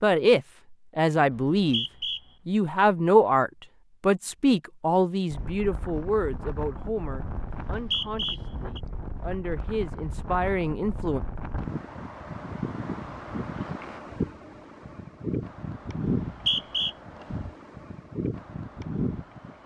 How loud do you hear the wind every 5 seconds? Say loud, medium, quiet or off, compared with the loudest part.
off, medium, loud, loud.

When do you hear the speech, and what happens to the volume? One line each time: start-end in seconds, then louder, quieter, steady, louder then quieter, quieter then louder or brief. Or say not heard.
0.0-1.9 brief
2.5-11.2 quieter then louder.